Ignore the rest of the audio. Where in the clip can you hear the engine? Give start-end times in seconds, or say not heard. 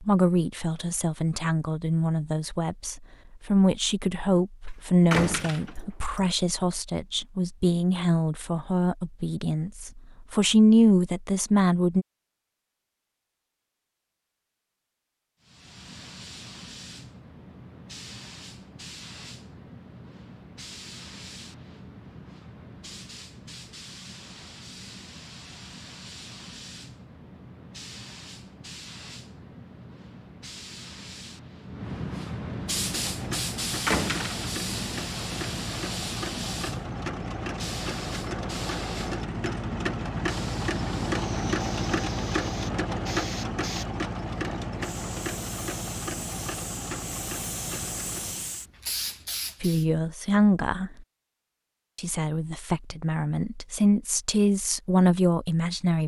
32.8-48.6.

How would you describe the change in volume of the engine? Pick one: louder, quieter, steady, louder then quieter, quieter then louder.
louder then quieter.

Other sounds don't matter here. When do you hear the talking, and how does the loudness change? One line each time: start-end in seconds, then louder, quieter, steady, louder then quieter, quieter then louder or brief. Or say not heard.
0.0-12.1 louder
49.6-50.9 brief
52.0-56.0 louder.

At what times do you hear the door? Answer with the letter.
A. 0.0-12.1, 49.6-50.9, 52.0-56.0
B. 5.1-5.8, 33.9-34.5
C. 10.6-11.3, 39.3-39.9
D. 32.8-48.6
B.